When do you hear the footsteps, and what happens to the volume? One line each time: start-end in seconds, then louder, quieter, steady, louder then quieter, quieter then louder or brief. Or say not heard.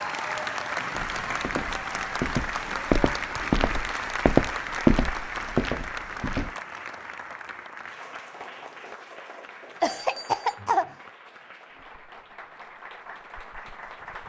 0.9-6.5 louder then quieter.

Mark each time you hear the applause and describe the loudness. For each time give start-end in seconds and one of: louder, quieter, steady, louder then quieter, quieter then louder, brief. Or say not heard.
0.0-14.2 quieter.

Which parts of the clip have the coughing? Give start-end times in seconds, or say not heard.
9.8-10.9.